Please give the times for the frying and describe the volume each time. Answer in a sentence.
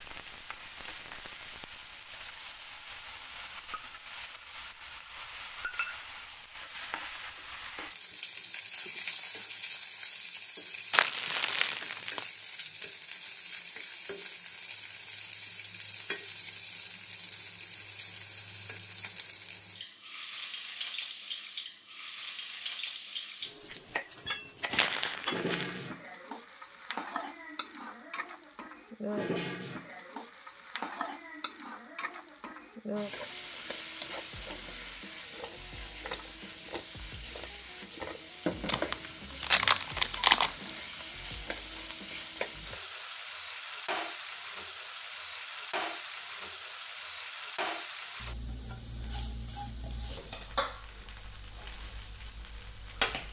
You can hear the frying from 0.0 to 53.2 s, at a steady volume.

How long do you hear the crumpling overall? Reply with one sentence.
You can hear the crumpling for 5 seconds altogether.